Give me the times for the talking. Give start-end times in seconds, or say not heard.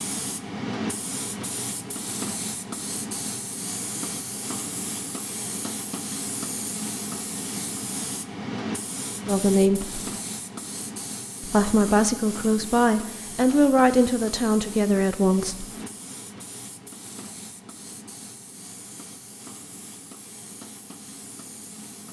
9.2-10.0, 11.4-15.7.